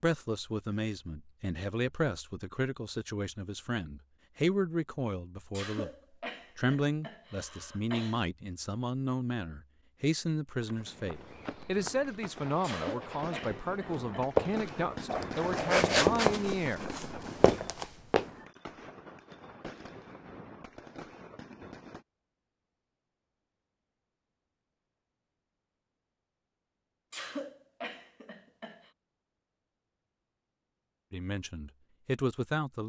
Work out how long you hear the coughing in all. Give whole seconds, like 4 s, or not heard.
6 s.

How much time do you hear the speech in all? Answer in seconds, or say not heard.
18 s.